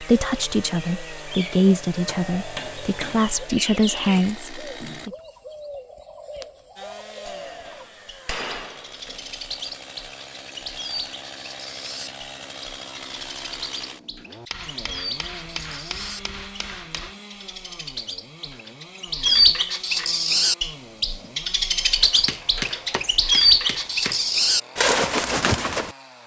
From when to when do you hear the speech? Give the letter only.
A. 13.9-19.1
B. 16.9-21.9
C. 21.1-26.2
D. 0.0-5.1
D.